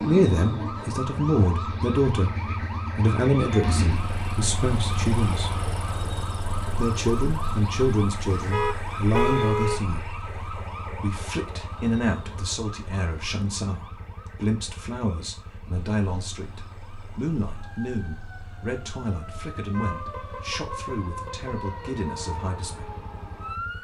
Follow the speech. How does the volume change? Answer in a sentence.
The loudness of the speech goes down.